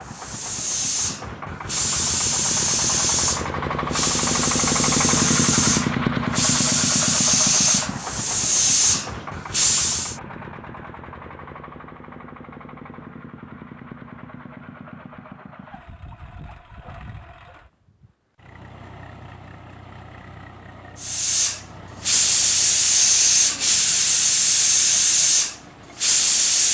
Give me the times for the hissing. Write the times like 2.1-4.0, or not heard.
0.0-10.2, 21.0-26.6.